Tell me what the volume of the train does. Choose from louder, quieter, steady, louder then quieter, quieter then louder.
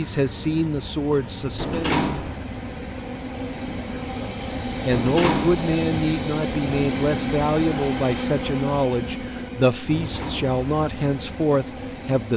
louder then quieter.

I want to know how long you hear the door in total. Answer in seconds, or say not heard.
2 s.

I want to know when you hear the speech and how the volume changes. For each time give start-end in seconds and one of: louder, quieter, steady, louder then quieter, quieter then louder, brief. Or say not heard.
0.0-1.9 brief
4.1-12.3 steady.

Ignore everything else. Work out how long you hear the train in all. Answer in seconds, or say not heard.
12 s.